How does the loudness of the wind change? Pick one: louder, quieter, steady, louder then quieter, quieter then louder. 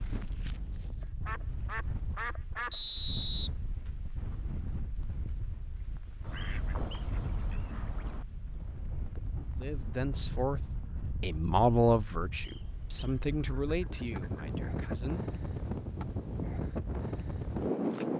louder.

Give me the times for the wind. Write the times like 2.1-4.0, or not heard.
0.0-18.1.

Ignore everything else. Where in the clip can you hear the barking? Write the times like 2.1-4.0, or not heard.
not heard.